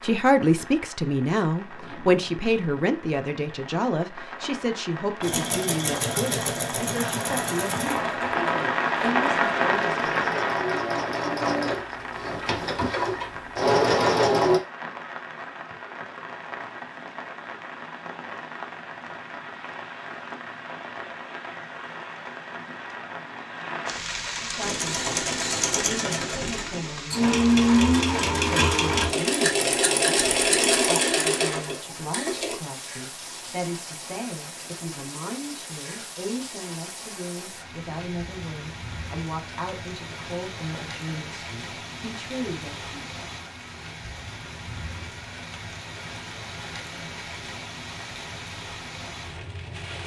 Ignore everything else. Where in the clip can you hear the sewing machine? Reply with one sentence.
You can hear the sewing machine from 5.2 to 14.6 s and from 24.6 to 32.5 s.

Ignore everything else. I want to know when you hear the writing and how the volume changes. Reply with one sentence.
You can't hear the writing here.